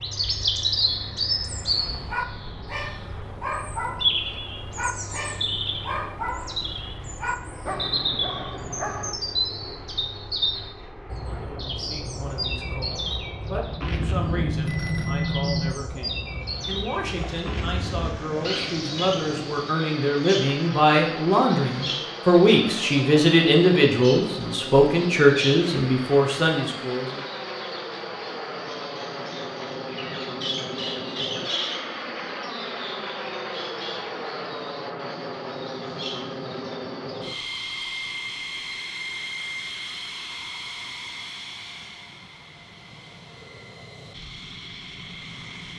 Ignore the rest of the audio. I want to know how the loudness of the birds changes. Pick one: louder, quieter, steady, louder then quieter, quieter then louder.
quieter.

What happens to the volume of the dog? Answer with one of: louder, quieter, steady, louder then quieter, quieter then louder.
steady.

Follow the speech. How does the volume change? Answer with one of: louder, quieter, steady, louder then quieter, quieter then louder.
louder.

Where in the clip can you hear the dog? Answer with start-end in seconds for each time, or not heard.
1.9-9.2.